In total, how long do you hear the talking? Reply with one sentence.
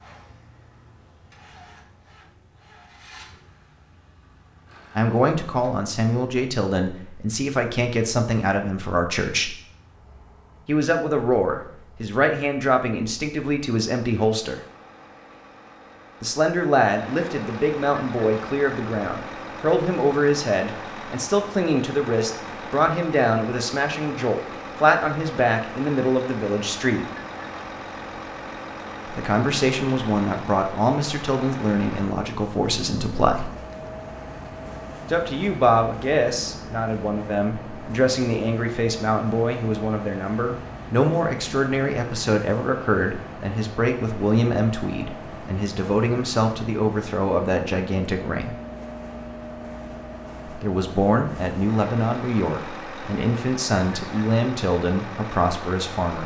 You can hear the talking for 43 seconds altogether.